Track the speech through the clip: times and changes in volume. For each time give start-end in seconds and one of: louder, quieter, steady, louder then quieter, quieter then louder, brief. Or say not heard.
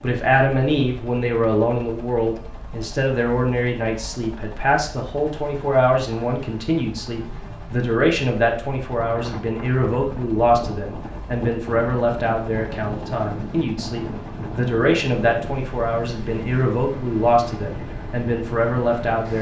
0.0-19.3 steady.